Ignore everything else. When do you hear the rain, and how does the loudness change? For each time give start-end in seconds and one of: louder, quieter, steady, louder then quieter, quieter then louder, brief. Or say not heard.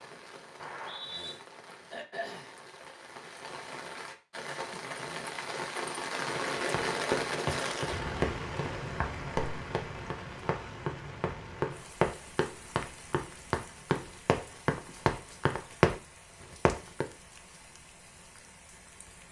0.0-19.2 louder then quieter.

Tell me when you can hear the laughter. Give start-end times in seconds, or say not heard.
not heard.